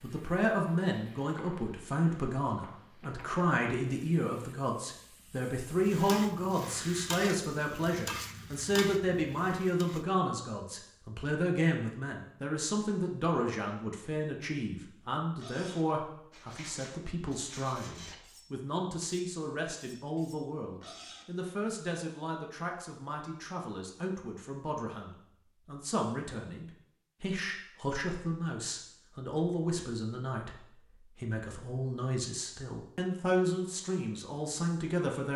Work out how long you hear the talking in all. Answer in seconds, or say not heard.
35 s.